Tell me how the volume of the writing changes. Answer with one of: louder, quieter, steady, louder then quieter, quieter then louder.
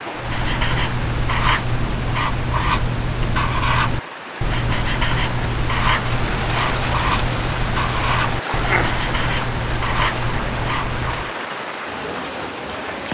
steady.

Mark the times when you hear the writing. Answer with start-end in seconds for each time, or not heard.
0.1-11.3.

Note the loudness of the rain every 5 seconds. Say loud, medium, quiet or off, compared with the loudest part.
medium, loud, loud.